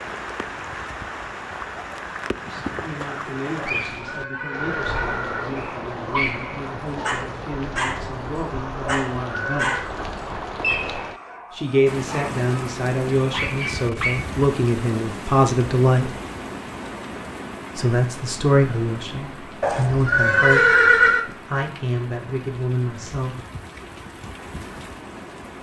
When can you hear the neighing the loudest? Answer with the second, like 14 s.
21 s.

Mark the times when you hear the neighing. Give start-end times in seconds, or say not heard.
3.5-5.5, 8.8-9.8, 19.6-21.2.